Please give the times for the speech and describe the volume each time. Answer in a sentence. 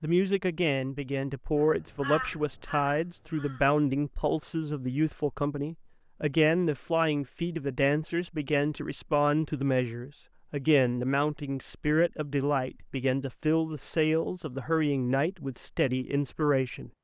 The speech can be heard from 0.0 to 16.9 s, at a steady volume.